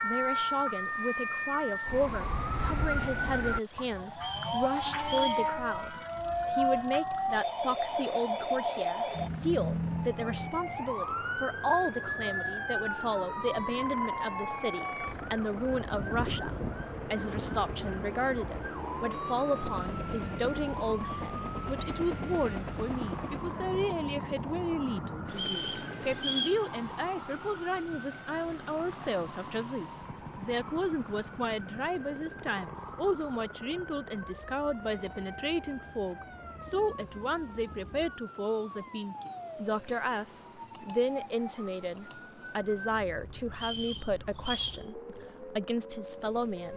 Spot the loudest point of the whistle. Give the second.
26 s.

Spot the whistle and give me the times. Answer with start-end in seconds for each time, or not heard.
4.2-5.5, 25.3-26.6, 43.5-44.9.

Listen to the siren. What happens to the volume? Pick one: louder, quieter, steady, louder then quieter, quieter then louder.
quieter.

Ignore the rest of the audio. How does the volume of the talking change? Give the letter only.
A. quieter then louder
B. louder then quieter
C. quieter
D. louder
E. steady
E.